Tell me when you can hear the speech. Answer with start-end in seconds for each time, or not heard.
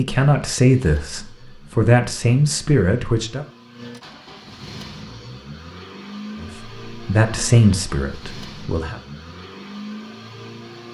0.0-3.5, 6.4-9.0.